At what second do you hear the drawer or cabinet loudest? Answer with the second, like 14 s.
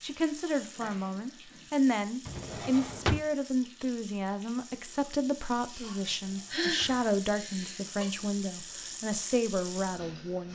3 s.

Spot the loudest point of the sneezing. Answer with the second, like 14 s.
7 s.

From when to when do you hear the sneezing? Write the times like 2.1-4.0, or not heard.
0.6-1.6, 5.7-8.1.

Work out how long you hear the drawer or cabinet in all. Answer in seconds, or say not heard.
2 s.